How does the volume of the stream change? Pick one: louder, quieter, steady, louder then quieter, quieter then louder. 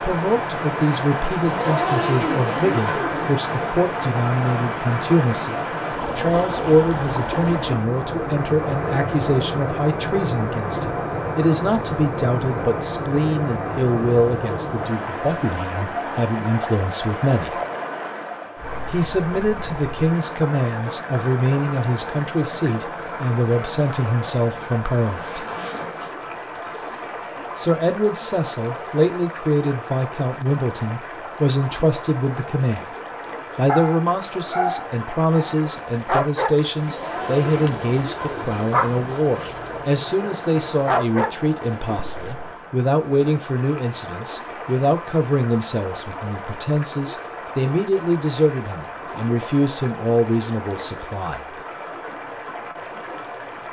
quieter.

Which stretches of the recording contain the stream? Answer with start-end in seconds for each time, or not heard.
0.0-53.6.